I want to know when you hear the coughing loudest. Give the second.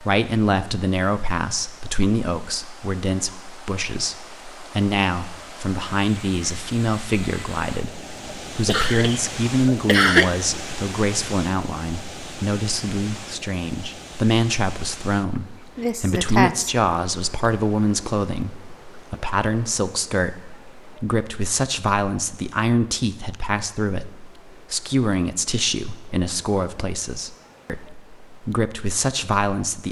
10 s.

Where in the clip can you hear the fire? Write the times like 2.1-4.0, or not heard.
not heard.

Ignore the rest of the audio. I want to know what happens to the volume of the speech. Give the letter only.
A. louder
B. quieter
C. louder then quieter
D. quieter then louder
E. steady
E.